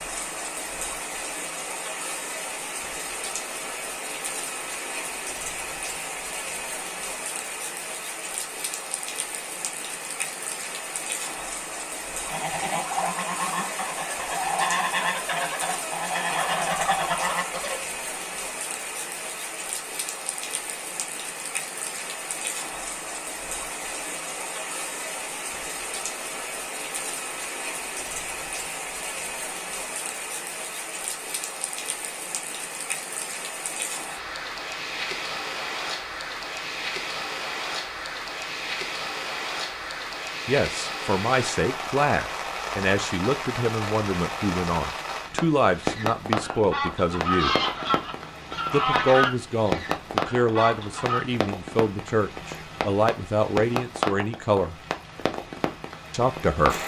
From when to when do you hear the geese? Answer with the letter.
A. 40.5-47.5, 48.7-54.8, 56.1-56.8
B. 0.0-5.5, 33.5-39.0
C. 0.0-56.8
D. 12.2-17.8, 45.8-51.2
D.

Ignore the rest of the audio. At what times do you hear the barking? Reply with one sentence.
You can't hear the barking here.